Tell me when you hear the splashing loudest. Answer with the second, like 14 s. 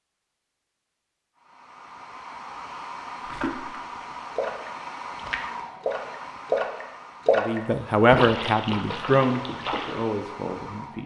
7 s.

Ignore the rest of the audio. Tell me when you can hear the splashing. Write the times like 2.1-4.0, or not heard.
3.2-10.1.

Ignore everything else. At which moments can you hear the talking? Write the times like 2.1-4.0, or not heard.
7.3-11.0.